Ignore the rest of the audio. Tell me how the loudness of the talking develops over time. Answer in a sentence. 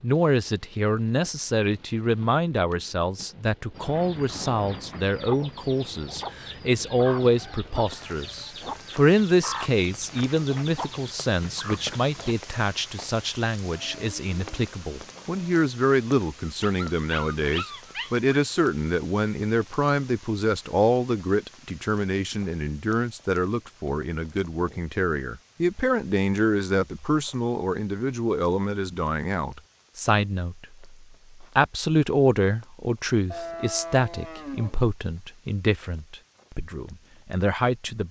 The loudness of the talking stays about the same.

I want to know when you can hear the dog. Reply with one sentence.
You can hear the dog from 16.4 to 18.2 s.